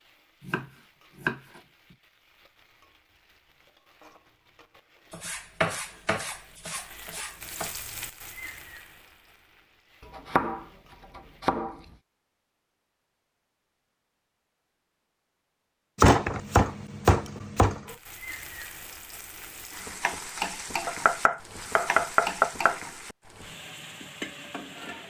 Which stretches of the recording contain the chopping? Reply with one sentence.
The chopping can be heard from 0.4 to 1.6 s, from 5.1 to 7.8 s, from 10.2 to 11.8 s, from 15.9 to 17.9 s and from 20.9 to 22.8 s.